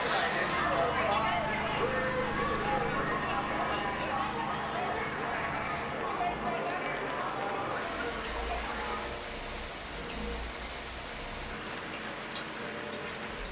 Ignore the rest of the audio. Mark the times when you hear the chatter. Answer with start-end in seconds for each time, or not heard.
0.0-9.1.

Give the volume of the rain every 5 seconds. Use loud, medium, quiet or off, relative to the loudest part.
medium, loud, loud.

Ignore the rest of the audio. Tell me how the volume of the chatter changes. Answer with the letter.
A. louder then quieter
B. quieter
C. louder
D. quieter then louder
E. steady
B.